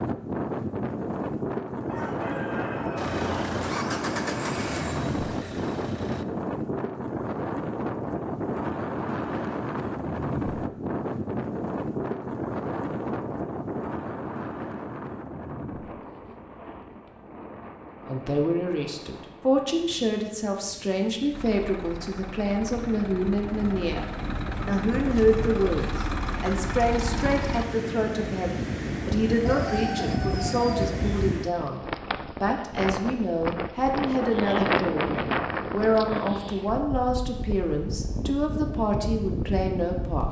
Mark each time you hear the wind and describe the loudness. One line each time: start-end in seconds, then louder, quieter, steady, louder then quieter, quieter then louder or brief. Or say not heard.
0.0-40.2 quieter then louder.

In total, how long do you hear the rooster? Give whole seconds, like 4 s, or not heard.
3 s.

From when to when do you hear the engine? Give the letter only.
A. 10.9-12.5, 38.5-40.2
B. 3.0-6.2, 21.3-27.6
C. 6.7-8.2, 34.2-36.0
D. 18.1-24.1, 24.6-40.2
B.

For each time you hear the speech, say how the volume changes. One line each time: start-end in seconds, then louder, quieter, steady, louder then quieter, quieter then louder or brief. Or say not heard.
18.1-24.1 steady
24.6-40.2 steady.